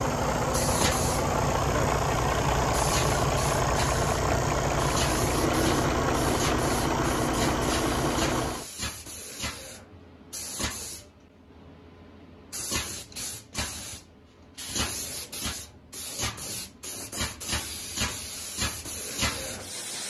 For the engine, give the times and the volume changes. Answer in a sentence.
The engine can be heard from 0.0 to 8.7 s, at a steady volume.